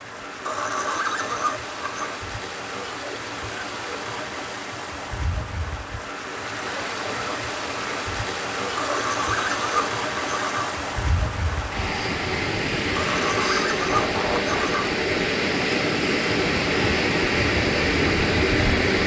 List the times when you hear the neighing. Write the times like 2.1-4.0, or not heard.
0.5-2.2, 8.8-10.8, 12.9-14.9.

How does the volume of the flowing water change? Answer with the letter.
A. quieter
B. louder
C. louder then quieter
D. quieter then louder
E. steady
B.